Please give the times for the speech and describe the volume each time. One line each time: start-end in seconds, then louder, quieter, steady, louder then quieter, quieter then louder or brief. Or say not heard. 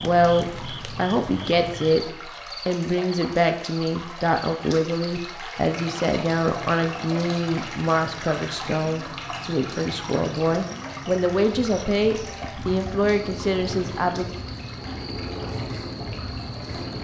0.0-14.2 steady.